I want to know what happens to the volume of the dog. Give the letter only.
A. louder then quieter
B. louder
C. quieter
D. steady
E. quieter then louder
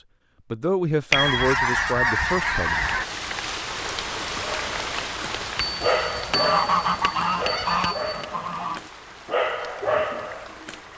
E.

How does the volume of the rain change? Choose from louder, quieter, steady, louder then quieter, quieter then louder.
quieter.